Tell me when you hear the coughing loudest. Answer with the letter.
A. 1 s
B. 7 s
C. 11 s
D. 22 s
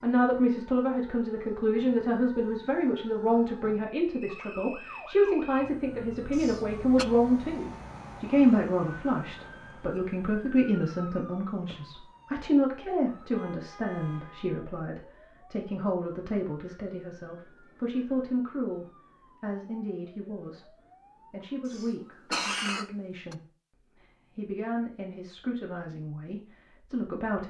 D.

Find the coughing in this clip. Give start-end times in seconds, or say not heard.
6.3-7.0, 21.6-23.4.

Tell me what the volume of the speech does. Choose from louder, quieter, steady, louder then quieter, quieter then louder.
quieter.